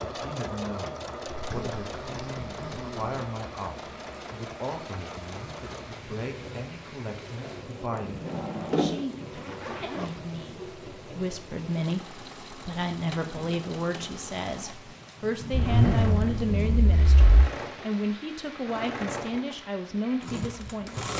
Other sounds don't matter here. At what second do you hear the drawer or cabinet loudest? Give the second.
9 s.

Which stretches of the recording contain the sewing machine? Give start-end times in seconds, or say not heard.
0.0-21.1.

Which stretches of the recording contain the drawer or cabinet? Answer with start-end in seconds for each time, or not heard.
7.4-9.0.